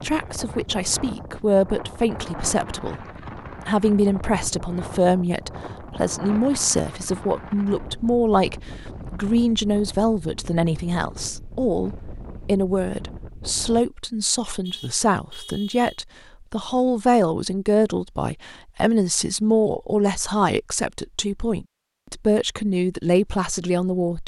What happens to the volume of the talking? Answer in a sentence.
The volume of the talking stays about the same.